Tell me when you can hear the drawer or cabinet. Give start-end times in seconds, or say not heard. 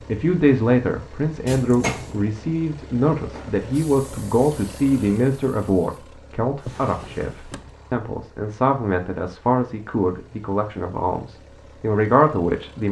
1.4-2.2, 6.5-7.8.